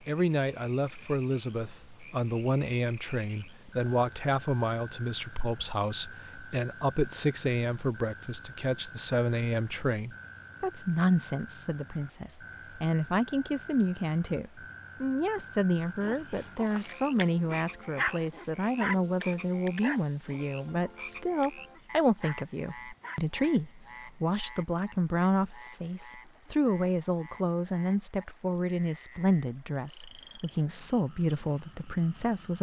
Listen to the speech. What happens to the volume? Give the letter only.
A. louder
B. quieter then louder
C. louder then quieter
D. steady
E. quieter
D.